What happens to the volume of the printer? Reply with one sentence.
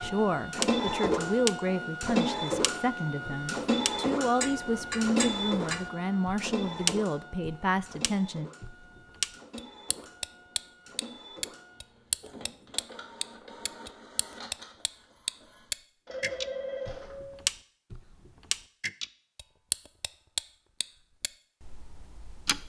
The loudness of the printer goes down.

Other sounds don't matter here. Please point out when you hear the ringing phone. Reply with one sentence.
You can hear the ringing phone from 16.1 to 17.0 s.